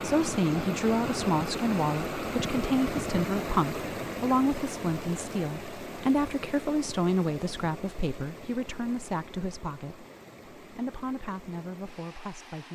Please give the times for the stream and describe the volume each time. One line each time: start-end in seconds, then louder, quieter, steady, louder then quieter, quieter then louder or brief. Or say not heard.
0.0-12.7 quieter.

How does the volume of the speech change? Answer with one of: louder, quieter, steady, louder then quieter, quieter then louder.
quieter.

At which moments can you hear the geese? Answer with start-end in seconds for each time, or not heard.
not heard.